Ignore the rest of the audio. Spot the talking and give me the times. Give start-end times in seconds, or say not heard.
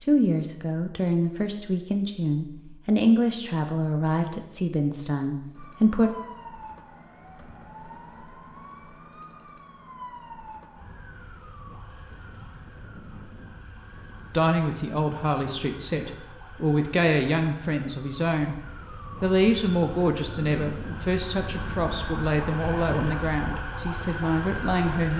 0.0-6.2, 14.3-25.1.